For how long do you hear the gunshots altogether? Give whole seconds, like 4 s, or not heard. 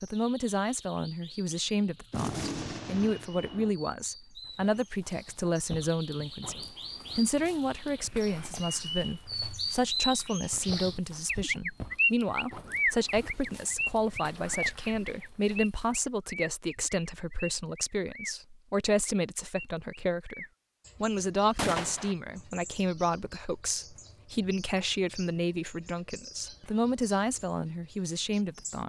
2 s.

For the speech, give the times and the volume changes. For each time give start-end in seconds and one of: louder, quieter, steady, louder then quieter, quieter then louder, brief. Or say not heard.
0.0-28.8 steady.